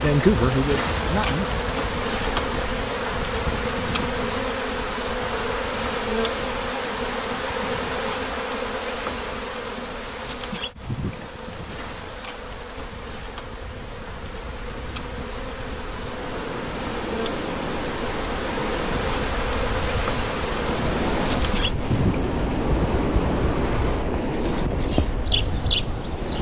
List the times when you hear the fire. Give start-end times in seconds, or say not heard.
not heard.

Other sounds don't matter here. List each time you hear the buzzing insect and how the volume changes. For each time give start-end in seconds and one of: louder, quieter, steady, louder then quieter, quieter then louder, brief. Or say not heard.
0.0-26.3 quieter then louder.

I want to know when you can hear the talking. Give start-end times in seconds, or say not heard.
0.0-1.6.